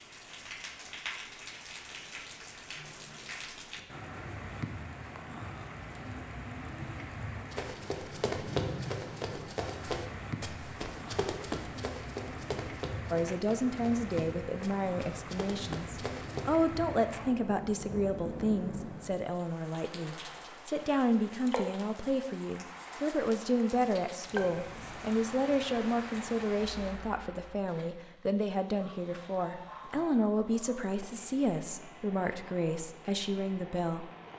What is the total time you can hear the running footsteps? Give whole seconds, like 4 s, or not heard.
9 s.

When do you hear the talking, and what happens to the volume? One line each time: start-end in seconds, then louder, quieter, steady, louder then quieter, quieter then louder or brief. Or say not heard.
13.1-34.1 steady.